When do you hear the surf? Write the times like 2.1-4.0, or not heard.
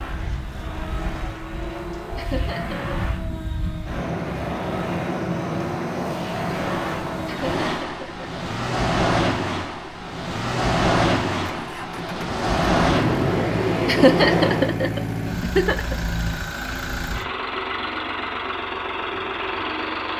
0.0-14.7.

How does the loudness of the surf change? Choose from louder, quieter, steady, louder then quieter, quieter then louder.
louder.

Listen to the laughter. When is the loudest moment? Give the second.
14 s.